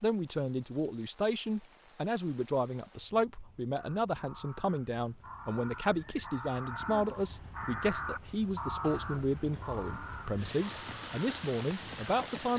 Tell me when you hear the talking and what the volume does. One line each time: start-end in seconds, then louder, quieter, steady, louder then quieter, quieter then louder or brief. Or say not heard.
0.0-12.5 steady.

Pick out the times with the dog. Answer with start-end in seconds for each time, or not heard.
not heard.